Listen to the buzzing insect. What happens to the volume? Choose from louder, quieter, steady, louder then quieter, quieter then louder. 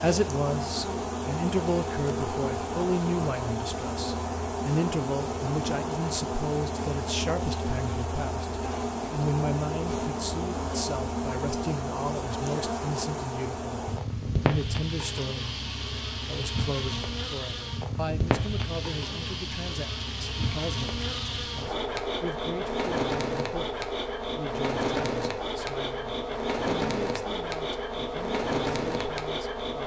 steady.